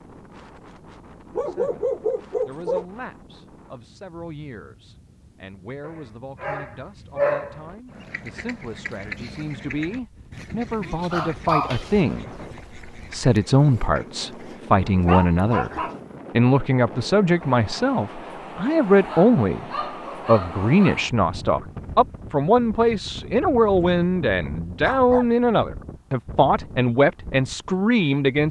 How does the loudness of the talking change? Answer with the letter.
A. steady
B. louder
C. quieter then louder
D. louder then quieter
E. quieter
B.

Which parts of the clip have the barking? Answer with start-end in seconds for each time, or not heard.
1.3-2.9, 5.8-7.6, 11.1-12.2, 14.8-16.0, 19.1-20.9, 24.8-25.3.